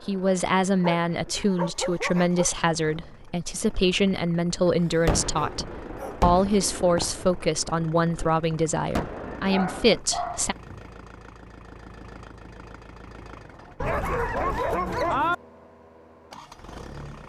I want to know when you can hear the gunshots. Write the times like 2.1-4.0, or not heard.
5.0-10.0.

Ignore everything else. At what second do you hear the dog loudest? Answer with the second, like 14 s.
15 s.